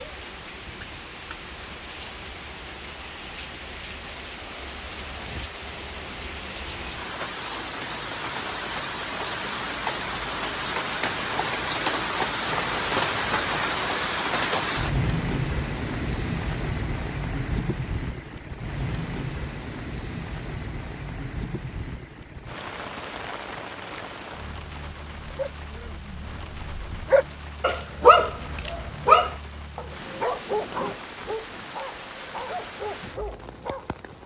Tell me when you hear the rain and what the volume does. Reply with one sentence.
You can hear the rain from 0.0 to 34.2 s, getting louder then quieter.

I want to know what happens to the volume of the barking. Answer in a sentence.
The loudness of the barking goes up, then down.